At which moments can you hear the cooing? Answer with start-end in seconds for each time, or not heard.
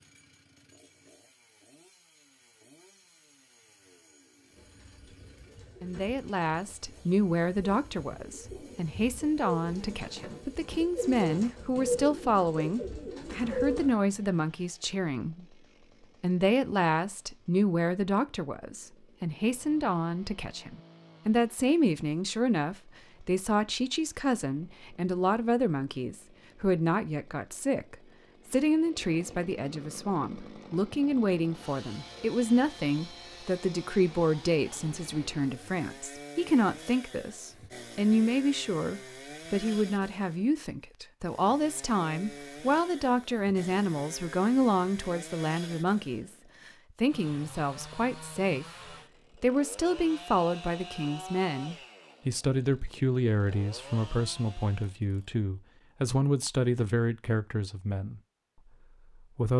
4.5-13.9.